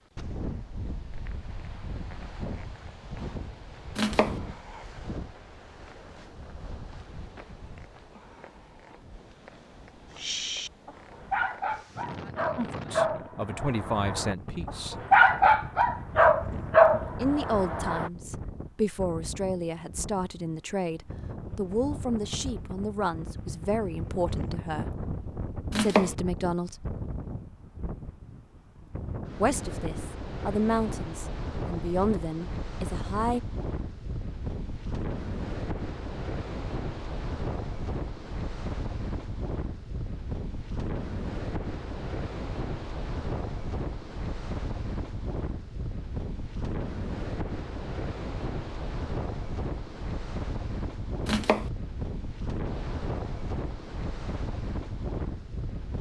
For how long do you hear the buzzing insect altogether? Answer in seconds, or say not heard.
not heard.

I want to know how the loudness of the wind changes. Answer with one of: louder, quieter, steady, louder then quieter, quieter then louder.
louder.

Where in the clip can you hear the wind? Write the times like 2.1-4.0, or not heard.
0.0-55.9.